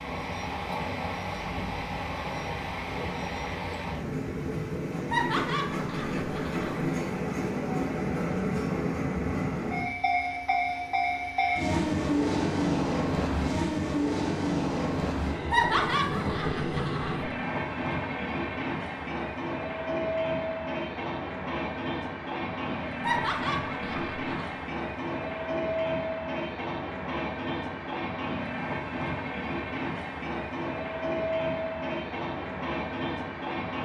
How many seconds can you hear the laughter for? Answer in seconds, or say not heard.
5 s.